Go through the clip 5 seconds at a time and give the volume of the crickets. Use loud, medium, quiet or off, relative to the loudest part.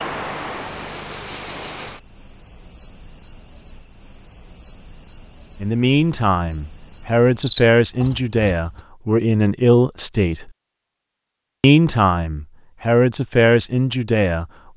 loud, loud, off.